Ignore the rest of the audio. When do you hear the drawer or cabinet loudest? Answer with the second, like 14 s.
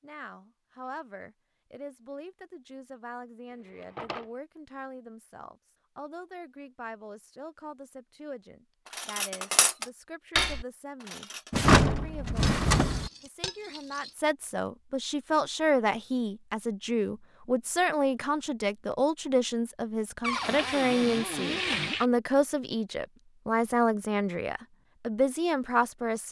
12 s.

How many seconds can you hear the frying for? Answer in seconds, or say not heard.
2 s.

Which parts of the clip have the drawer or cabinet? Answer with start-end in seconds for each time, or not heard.
3.8-4.2, 11.5-13.1, 20.2-22.0.